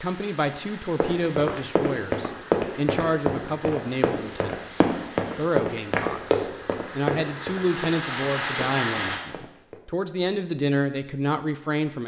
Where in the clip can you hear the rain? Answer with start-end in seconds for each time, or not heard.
0.0-9.2.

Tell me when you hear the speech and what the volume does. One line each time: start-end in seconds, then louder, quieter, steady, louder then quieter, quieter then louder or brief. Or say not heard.
0.0-12.0 steady.